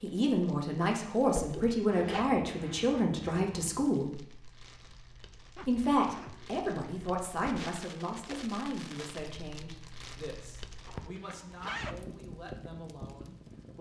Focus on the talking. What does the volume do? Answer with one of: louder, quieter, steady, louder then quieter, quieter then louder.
quieter.